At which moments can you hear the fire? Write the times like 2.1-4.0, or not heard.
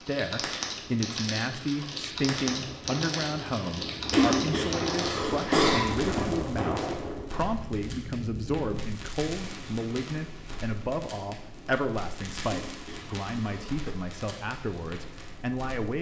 0.0-15.9.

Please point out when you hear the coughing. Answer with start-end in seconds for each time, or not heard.
4.1-6.0, 12.4-13.9.